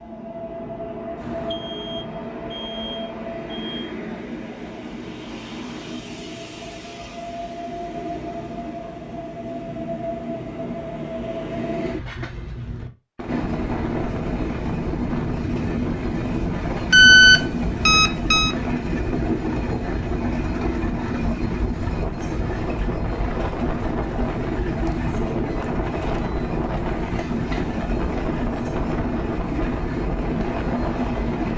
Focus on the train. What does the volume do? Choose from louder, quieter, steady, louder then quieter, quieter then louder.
louder.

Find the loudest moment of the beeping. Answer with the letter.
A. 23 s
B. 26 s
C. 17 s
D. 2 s
C.